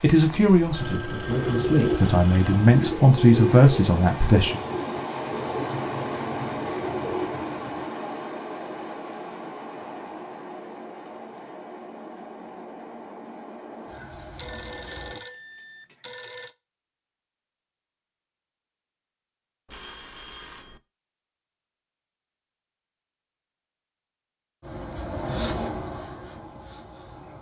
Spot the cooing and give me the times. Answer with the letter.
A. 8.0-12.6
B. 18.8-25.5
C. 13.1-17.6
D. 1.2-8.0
D.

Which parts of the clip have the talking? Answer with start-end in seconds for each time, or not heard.
0.0-4.6.